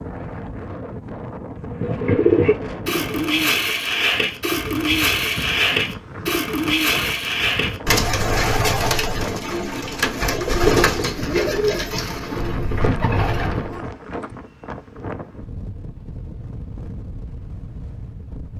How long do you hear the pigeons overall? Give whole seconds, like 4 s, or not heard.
12 s.